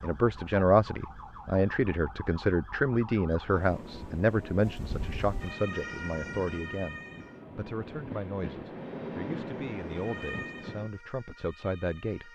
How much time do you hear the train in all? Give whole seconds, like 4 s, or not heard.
7 s.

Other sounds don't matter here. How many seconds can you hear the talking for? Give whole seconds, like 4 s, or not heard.
12 s.